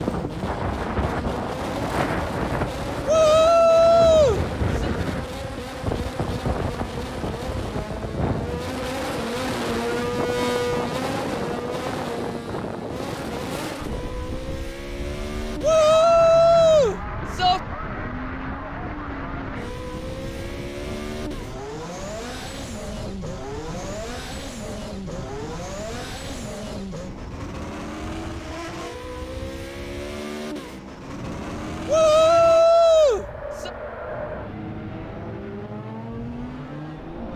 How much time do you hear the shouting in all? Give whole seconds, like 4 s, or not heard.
6 s.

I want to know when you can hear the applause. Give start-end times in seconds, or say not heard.
not heard.